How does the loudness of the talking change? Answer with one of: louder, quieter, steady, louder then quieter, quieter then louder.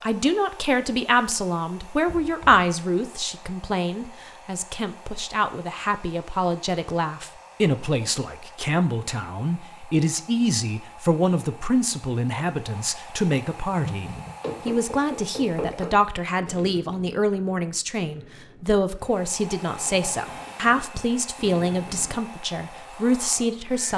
steady.